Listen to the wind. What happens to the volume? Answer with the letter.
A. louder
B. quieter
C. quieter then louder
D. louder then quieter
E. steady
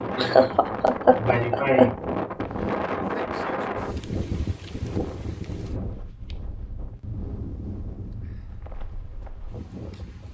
B.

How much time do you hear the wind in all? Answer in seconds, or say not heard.
10 s.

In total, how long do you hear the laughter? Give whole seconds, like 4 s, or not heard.
2 s.